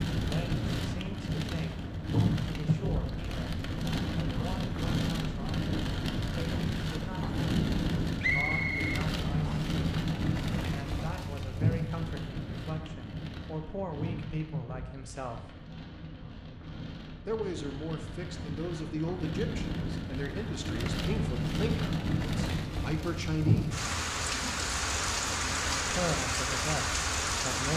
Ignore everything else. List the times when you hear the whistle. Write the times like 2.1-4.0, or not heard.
8.2-9.7.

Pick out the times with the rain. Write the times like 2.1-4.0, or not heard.
0.0-27.7.